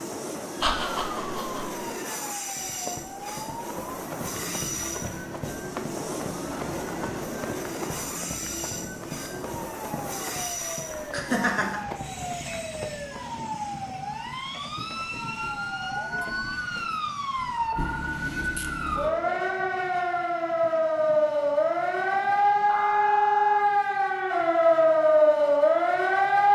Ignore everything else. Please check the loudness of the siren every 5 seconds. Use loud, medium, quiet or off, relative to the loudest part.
quiet, quiet, quiet, medium, loud, loud.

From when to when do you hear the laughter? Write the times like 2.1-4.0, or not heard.
0.6-1.8, 11.1-11.8, 22.6-23.6.